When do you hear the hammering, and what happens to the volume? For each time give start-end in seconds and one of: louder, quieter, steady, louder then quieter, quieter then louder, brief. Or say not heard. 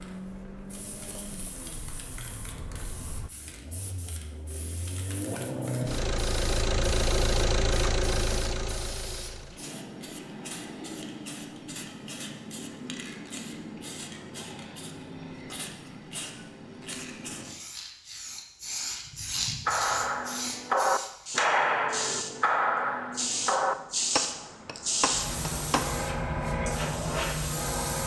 19.6-25.9 quieter.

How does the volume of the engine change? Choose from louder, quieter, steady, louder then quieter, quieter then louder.
louder.